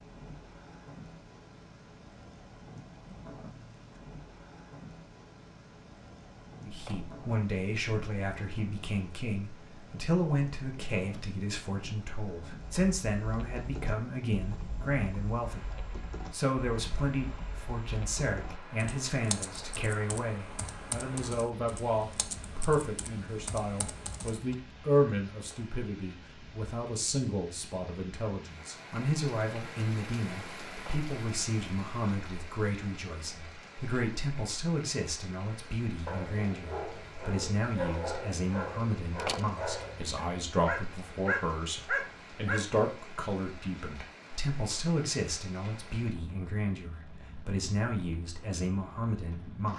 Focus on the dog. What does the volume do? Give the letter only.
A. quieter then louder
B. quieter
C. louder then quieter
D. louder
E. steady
D.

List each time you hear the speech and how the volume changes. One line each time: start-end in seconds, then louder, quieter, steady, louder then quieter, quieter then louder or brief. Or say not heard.
6.7-49.7 steady.